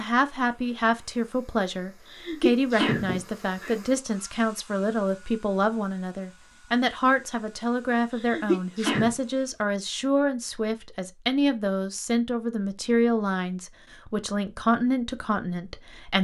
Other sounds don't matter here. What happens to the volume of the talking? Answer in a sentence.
The loudness of the talking stays about the same.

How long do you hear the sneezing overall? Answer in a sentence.
The sneezing can be heard for 3 seconds in total.